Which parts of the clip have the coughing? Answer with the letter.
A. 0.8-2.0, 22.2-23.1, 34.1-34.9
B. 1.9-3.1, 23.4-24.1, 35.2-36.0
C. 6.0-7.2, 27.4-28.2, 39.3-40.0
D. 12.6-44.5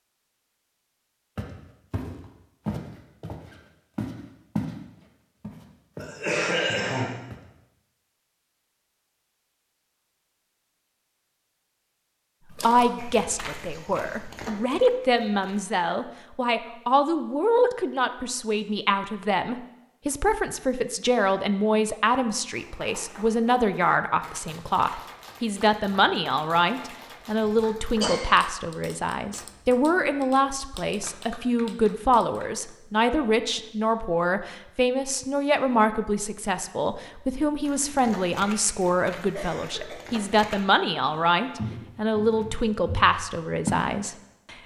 C.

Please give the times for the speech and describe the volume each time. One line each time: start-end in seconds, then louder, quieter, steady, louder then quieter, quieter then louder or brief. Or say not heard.
12.6-44.5 steady.